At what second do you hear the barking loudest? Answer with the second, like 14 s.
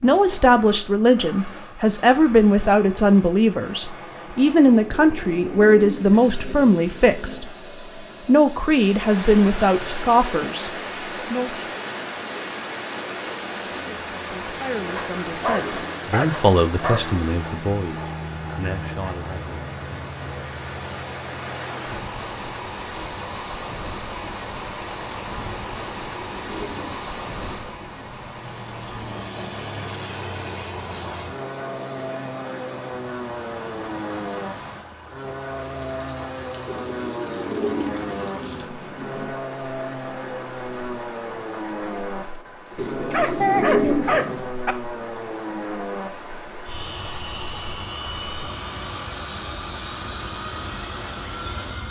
44 s.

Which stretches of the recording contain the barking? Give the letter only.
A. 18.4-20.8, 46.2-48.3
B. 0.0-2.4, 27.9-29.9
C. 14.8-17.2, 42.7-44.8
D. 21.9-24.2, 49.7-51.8
C.